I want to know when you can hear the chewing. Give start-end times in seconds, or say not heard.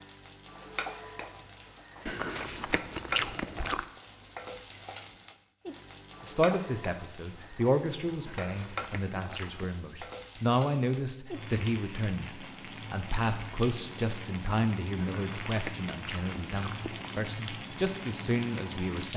2.0-3.9, 8.2-9.8, 14.9-17.1.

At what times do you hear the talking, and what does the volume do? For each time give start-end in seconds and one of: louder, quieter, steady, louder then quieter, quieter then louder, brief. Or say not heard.
6.2-19.1 steady.